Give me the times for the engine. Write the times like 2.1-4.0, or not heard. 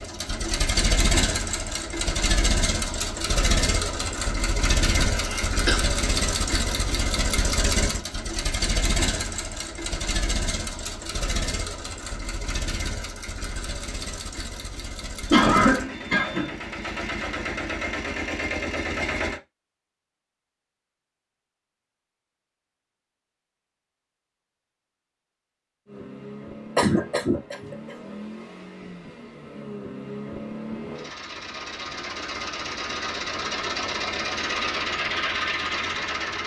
0.0-19.4, 25.9-36.4.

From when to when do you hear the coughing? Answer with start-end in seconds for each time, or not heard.
5.2-5.8, 15.3-16.6, 26.8-27.8.